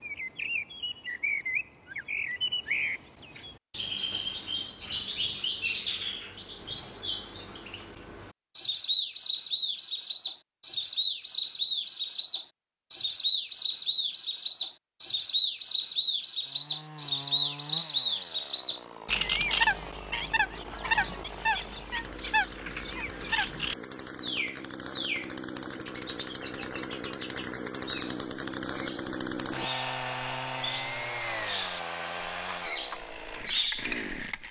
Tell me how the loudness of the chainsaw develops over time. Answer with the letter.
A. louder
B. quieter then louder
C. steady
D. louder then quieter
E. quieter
A.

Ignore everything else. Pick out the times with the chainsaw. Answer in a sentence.
You can hear the chainsaw from 16.4 to 34.4 s.